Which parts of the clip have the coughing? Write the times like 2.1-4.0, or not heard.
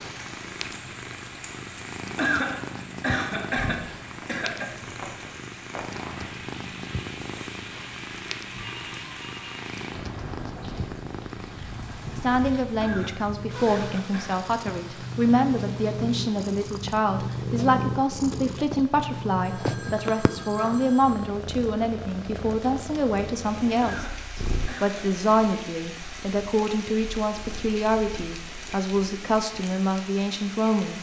2.1-4.8, 12.8-14.5, 23.8-25.2.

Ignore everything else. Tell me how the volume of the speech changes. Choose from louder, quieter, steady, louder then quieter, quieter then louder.
steady.